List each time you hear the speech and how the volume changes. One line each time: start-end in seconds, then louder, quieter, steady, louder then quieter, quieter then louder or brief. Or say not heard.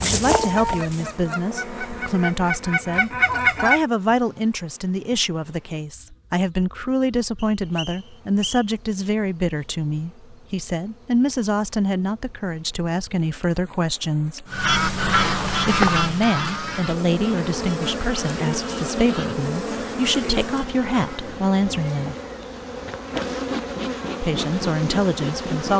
0.0-14.4 steady
15.6-22.1 steady
24.2-25.7 brief.